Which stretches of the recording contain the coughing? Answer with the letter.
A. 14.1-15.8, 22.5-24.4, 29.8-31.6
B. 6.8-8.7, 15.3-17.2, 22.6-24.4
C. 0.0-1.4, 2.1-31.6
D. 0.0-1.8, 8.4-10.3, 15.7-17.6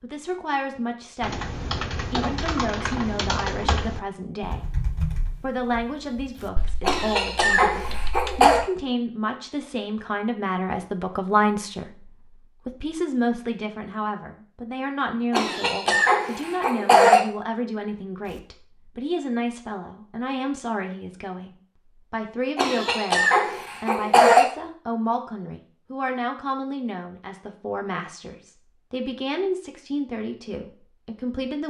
B.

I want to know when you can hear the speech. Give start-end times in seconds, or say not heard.
0.0-1.4, 2.1-31.6.